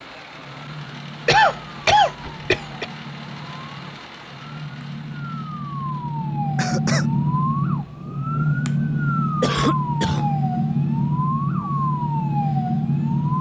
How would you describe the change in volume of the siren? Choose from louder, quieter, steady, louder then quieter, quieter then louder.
louder.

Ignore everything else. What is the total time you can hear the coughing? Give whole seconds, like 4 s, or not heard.
3 s.